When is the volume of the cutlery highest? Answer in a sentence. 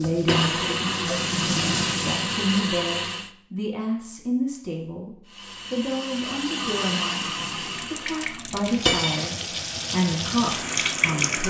The volume of the cutlery peaks at 9 seconds.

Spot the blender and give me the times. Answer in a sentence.
The blender can be heard from 0.0 to 3.3 s and from 5.2 to 8.5 s.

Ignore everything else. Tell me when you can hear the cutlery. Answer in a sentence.
You can hear the cutlery from 0.2 to 0.9 s and from 8.8 to 9.2 s.